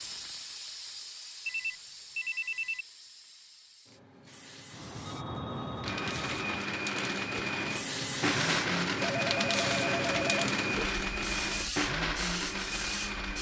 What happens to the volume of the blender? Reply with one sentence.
The loudness of the blender stays about the same.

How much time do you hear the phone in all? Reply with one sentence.
The phone can be heard for 5 seconds in total.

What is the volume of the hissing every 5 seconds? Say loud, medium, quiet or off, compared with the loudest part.
medium, loud, loud.